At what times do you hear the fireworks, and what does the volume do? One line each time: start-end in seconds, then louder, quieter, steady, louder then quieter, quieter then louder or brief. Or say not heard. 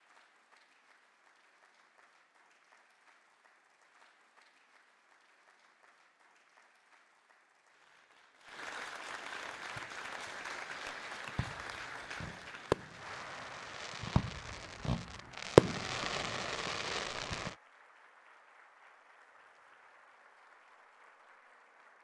9.5-17.5 louder then quieter.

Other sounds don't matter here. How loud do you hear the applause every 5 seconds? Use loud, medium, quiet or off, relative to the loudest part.
quiet, loud, loud, quiet, quiet.